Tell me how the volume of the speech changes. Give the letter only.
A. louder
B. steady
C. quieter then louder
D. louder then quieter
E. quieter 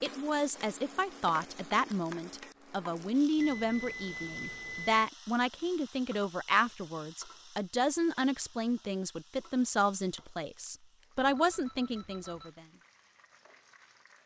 B.